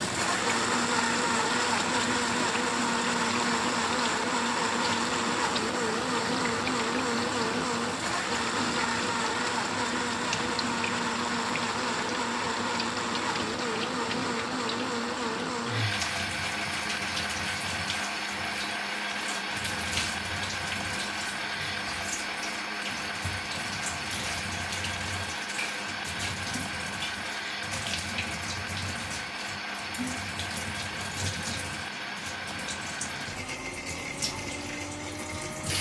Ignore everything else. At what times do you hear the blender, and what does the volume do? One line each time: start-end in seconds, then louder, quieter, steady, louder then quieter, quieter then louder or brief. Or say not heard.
0.0-35.7 quieter.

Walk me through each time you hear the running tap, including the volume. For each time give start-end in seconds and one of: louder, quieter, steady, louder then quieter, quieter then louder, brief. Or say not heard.
0.0-35.7 steady.